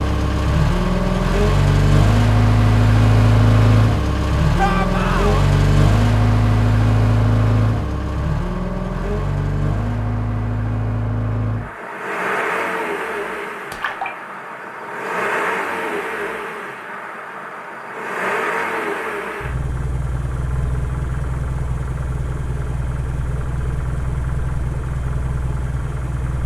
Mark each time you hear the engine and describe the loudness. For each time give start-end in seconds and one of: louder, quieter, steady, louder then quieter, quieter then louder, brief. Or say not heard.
0.0-26.4 quieter.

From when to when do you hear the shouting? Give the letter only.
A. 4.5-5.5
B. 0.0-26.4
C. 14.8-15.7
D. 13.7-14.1
A.